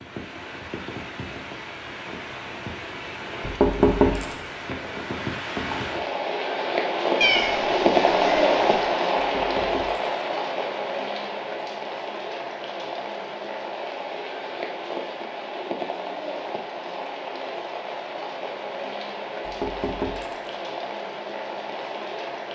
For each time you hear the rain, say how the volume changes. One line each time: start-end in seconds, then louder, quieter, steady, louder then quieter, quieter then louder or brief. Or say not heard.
0.0-22.5 louder then quieter.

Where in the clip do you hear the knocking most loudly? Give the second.
4 s.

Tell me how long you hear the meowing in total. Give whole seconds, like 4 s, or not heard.
2 s.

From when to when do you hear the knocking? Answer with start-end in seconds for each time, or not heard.
3.4-4.3, 9.2-10.0, 19.4-20.5.